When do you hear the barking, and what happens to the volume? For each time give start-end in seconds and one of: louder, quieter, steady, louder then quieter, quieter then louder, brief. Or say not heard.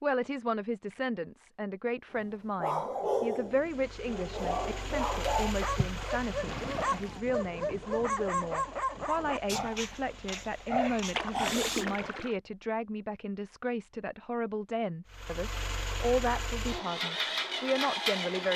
2.1-12.2 steady.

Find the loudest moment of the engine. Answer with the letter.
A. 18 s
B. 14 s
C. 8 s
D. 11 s
A.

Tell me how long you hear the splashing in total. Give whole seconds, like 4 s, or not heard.
3 s.